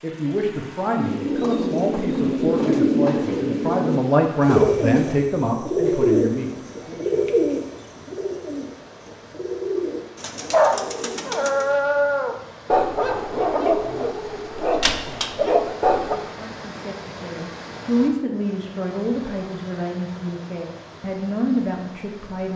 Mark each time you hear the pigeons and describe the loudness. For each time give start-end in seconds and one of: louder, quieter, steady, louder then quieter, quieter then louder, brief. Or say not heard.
0.9-11.8 quieter.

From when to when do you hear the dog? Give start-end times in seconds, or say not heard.
10.5-16.1.